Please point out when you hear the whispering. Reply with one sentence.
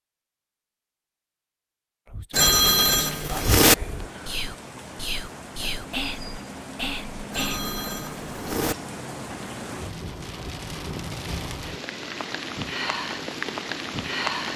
You can hear the whispering from 2.0 to 7.7 s.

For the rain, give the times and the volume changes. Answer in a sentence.
You can hear the rain from 3.5 to 14.5 s, getting louder.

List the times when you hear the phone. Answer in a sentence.
The phone can be heard from 2.3 to 3.8 s and from 7.3 to 8.8 s.